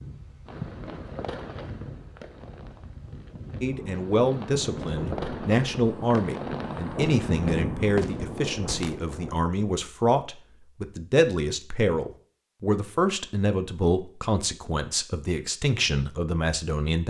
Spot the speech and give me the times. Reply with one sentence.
You can hear the speech from 3.6 to 17.0 s.